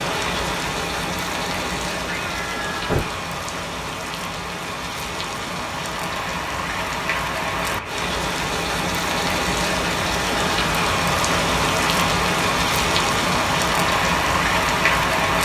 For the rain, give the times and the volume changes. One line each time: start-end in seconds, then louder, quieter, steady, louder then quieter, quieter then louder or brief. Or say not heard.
0.0-15.4 louder.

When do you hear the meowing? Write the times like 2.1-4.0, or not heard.
1.6-3.1.